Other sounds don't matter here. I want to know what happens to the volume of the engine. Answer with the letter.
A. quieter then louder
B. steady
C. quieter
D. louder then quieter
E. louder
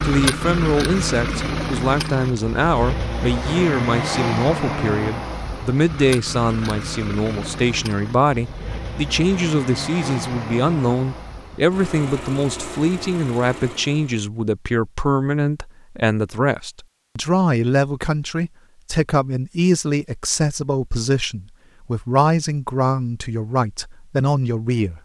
C.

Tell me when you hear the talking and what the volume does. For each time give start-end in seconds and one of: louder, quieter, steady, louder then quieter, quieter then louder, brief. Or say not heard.
0.0-25.0 steady.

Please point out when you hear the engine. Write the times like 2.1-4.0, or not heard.
0.0-14.2.